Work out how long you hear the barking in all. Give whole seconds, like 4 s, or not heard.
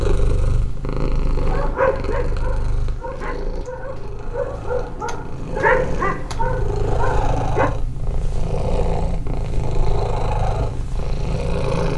6 s.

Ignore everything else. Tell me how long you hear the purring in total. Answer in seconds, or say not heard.
12 s.